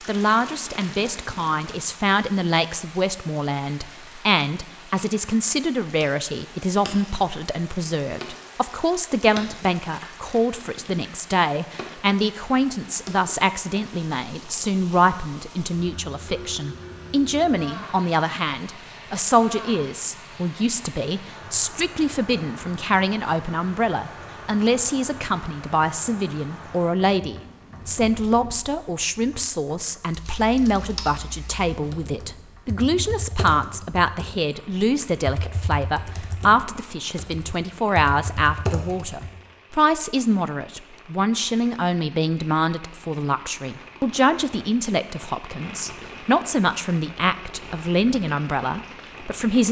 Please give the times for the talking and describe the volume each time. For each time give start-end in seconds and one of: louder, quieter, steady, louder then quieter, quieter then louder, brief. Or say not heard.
0.1-49.6 steady.